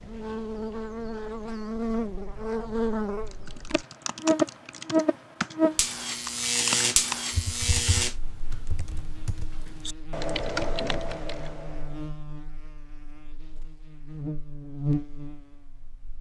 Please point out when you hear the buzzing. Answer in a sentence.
You can hear the buzzing from 0.0 to 16.1 s.